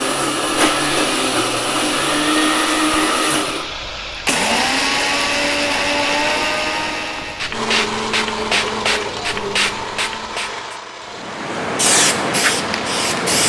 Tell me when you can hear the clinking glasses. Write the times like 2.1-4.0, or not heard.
not heard.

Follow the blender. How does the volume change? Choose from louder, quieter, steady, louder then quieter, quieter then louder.
quieter.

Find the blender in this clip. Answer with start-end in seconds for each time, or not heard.
0.0-13.2.